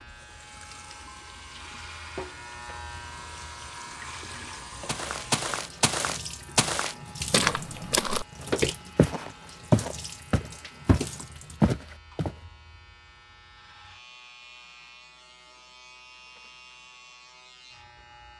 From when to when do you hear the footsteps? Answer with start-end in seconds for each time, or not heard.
4.8-12.3.